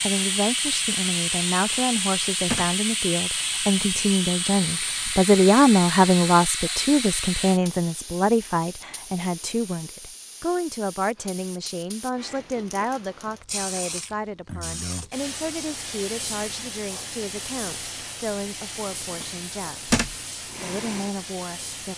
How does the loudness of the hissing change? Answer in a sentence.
The loudness of the hissing goes down, then up.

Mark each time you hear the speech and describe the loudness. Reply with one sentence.
The speech can be heard from 0.0 to 19.9 s, getting louder then quieter; and briefly from 20.6 to 21.9 s.